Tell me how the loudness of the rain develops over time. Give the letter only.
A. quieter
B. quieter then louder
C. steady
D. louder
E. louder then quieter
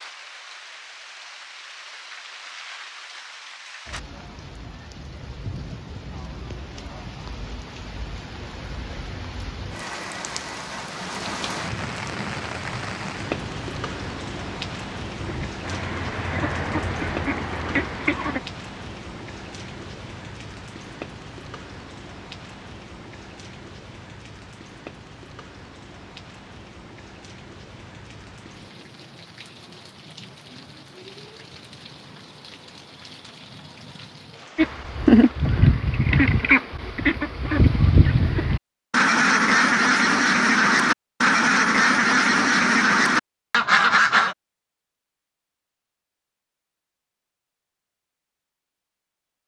E.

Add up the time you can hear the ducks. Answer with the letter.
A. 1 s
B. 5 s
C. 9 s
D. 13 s
D.